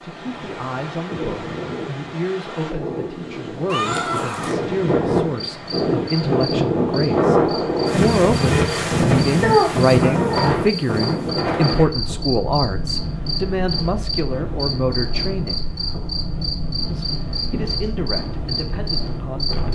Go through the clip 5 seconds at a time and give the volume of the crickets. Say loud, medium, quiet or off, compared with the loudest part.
off, medium, loud, loud.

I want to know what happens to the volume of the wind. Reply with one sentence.
The volume of the wind goes up, then down.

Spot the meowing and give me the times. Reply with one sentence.
The meowing can be heard from 3.7 to 4.5 s, from 9.4 to 10.6 s and from 17.5 to 18.0 s.